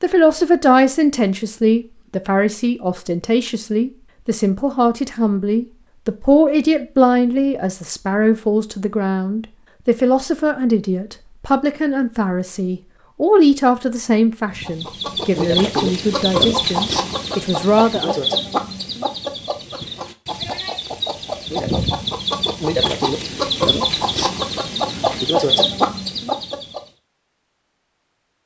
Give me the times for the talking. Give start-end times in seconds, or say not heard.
0.0-18.2.